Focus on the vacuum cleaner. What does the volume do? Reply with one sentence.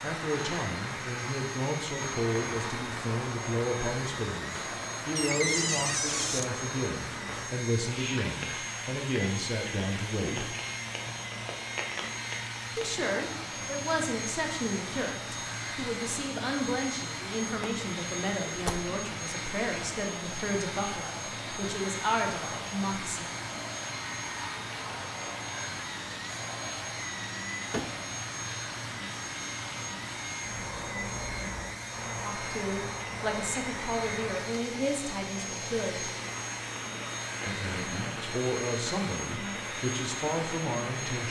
The loudness of the vacuum cleaner stays about the same.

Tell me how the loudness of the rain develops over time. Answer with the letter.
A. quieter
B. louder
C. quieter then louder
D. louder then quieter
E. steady
E.